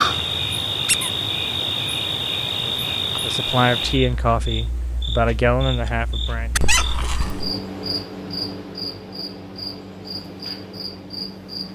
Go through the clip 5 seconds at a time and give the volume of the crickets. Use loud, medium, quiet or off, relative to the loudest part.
loud, medium, medium.